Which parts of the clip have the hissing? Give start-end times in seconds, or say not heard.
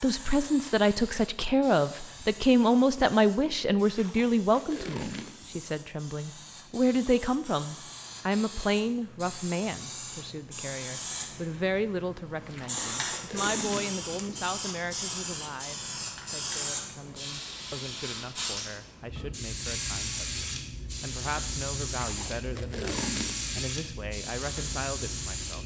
0.0-25.6.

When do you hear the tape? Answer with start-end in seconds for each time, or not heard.
3.9-5.6, 12.4-14.1, 21.9-23.6.